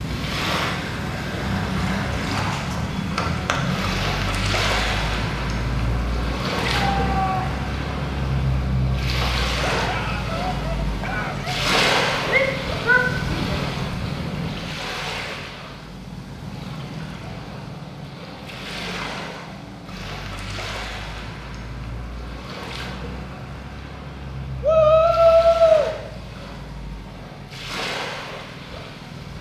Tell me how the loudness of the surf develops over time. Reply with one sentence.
The loudness of the surf goes down.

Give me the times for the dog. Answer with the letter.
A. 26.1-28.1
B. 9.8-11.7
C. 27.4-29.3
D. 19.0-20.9
B.